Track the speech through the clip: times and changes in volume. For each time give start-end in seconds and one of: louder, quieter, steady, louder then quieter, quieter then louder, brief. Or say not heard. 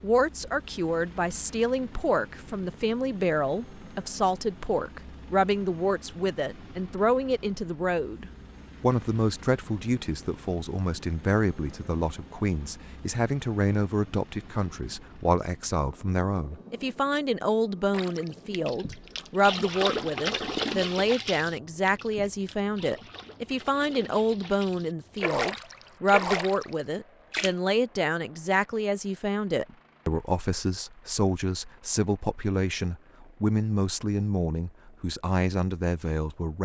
0.0-36.6 steady.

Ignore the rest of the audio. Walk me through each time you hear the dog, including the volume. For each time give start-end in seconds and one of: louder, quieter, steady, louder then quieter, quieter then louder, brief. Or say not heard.
not heard.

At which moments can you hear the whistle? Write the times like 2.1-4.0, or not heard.
not heard.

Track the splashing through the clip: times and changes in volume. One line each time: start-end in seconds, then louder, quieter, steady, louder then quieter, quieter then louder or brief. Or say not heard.
17.9-27.6 quieter then louder.